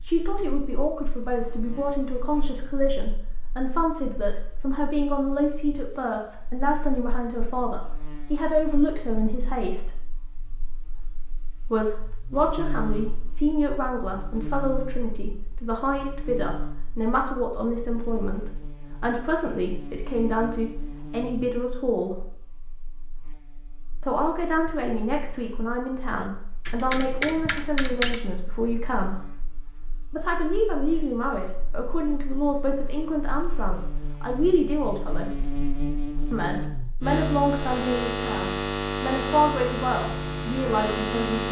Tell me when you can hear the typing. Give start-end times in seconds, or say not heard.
26.1-28.2.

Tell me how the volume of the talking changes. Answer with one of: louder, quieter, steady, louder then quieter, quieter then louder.
steady.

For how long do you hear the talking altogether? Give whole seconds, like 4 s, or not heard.
36 s.